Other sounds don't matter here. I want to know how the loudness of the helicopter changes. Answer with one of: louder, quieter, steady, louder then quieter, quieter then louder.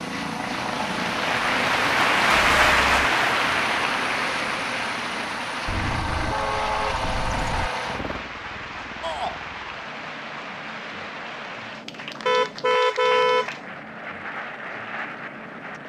quieter.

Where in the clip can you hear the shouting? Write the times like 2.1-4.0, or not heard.
9.0-9.4.